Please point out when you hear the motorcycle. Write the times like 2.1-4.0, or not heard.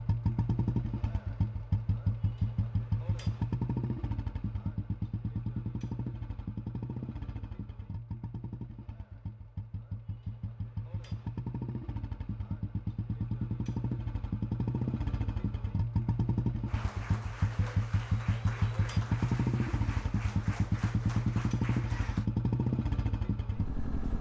0.0-24.1.